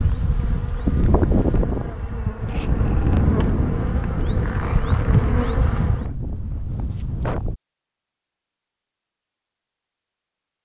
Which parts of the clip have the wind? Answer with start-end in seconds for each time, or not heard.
0.0-7.6.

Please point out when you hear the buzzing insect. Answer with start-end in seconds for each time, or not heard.
0.0-6.0.